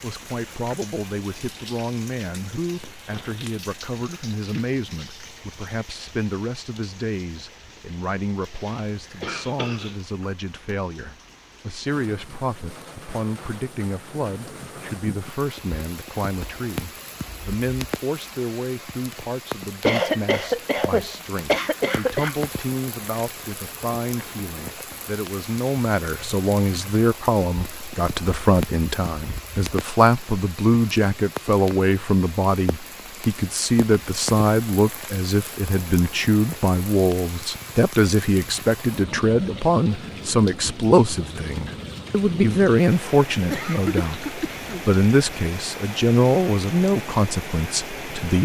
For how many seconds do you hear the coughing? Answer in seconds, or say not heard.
5 s.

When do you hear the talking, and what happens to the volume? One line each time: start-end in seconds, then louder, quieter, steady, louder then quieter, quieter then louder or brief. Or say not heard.
0.0-48.3 louder.